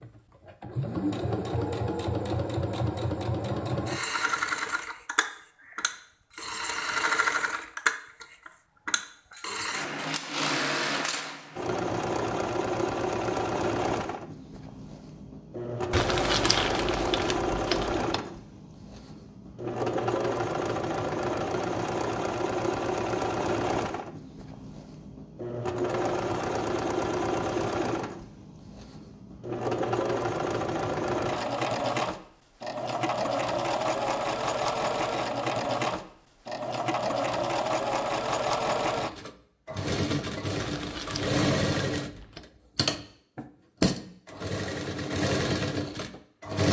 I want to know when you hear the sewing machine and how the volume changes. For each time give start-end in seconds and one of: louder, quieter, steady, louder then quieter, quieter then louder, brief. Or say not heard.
0.0-46.6 steady.